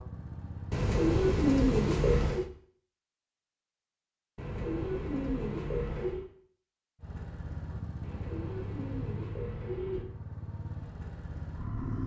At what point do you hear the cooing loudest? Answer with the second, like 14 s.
2 s.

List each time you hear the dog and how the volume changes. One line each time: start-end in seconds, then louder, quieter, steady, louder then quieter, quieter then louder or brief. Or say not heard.
not heard.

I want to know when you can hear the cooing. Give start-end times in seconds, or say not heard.
0.7-2.5, 4.3-6.2, 8.0-10.1.